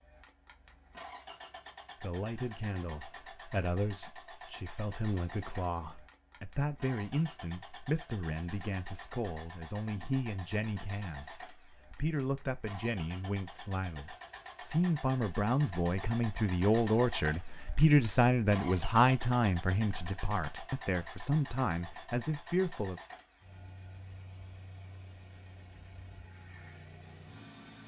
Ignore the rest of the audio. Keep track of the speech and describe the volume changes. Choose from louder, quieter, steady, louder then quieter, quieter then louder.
louder.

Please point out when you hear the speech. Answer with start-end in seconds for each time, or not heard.
2.0-23.0.